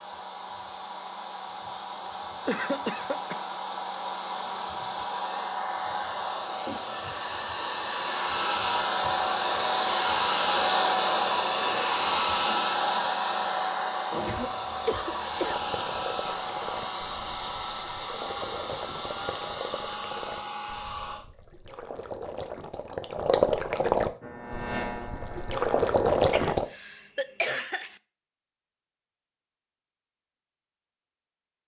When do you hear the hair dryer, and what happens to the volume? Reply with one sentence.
The hair dryer can be heard from 0.0 to 21.2 s, getting louder then quieter.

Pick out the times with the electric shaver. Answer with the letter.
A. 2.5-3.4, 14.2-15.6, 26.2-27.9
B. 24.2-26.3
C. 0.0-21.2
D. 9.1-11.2
B.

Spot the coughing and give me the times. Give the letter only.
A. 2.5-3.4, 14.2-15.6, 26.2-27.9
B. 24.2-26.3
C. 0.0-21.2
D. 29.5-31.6
A.